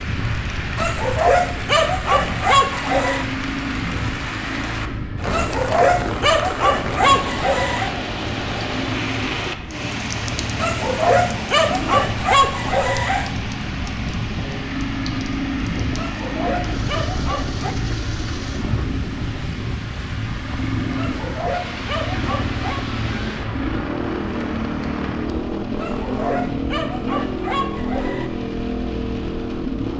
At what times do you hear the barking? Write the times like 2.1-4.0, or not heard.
0.8-3.2, 5.3-7.9, 10.6-13.3, 15.9-17.8, 20.9-22.8, 25.8-28.3.